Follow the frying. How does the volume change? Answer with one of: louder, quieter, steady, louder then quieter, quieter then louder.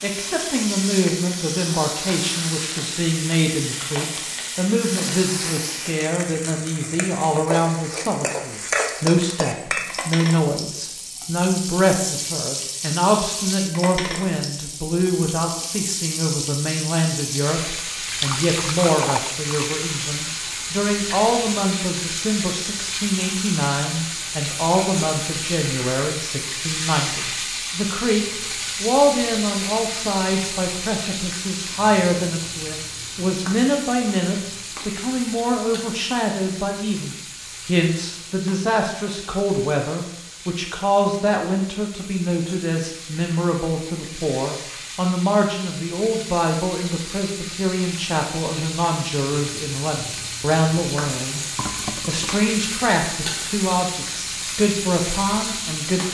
quieter then louder.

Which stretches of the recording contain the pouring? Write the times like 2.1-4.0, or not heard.
18.0-19.8, 51.5-52.5.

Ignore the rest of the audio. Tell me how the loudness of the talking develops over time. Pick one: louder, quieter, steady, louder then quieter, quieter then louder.
steady.